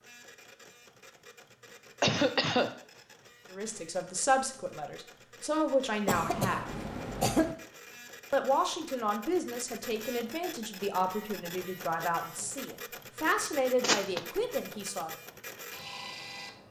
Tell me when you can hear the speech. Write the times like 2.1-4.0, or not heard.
3.5-6.7, 8.3-15.1.